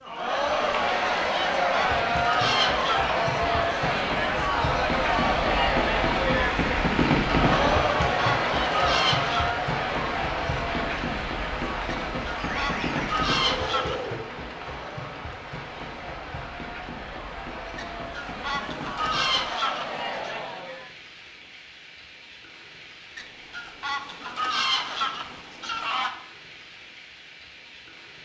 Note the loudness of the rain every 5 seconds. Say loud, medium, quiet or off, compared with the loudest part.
medium, loud, medium, quiet, quiet, quiet.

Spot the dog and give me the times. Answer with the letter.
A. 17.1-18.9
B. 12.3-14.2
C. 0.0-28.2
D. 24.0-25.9
B.